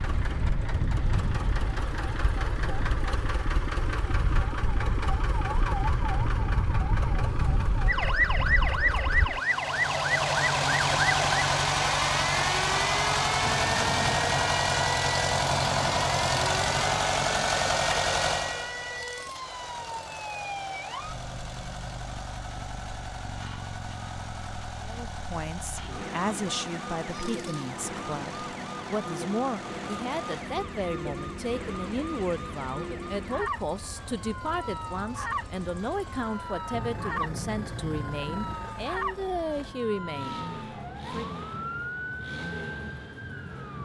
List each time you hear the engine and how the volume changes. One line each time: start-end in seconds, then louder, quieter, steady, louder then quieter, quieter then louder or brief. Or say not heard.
0.0-43.8 louder then quieter.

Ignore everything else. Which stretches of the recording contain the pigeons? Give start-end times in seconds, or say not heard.
not heard.